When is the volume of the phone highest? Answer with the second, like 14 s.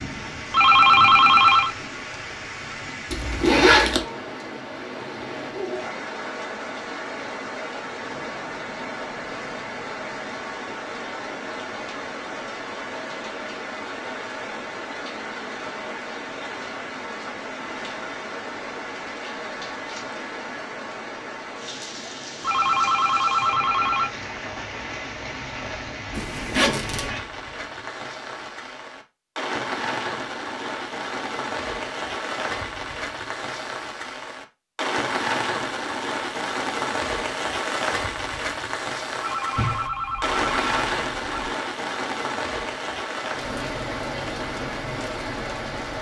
1 s.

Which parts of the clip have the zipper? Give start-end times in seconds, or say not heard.
3.1-4.0, 26.1-27.1, 39.5-41.5.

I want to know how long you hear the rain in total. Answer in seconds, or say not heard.
46 s.